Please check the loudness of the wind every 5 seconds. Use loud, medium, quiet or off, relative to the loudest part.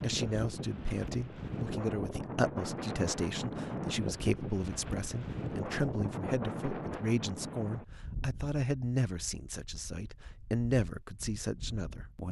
loud, loud, quiet.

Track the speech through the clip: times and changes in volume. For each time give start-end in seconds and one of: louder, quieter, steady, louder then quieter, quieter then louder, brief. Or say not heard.
0.0-12.2 steady.